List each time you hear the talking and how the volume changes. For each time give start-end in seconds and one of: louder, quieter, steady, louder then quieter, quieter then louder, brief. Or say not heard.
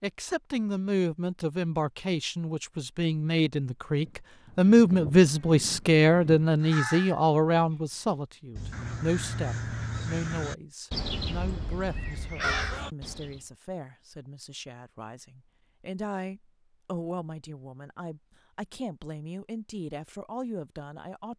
0.0-21.3 louder then quieter.